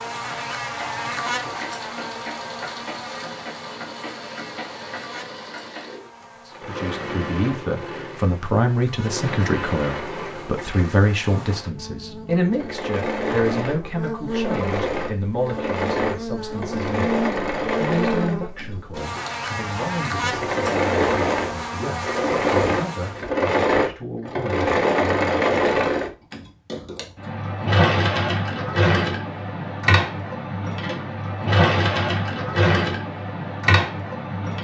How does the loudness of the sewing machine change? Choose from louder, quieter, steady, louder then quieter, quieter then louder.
louder.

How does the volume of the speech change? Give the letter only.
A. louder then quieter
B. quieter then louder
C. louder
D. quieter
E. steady
D.